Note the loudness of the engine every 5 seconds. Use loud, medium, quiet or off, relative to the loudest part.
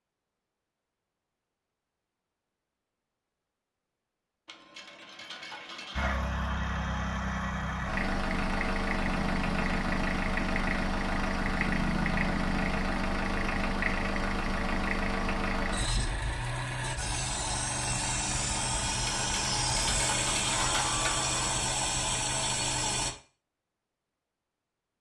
off, loud, loud, loud, loud.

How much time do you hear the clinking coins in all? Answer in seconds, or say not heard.
4 s.